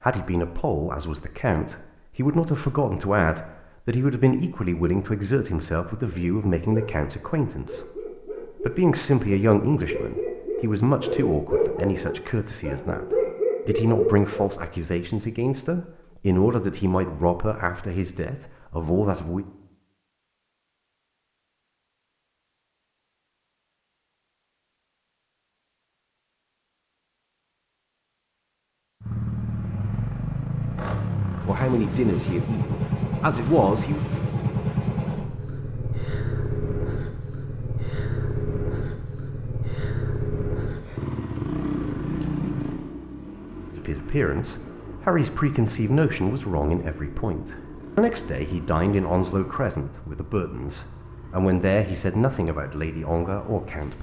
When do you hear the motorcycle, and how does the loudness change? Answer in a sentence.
You can hear the motorcycle from 29.0 to 53.9 s, getting quieter.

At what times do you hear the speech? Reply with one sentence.
The speech can be heard from 0.0 to 7.8 s, from 8.6 to 19.4 s, from 31.4 to 34.0 s and from 43.8 to 53.9 s.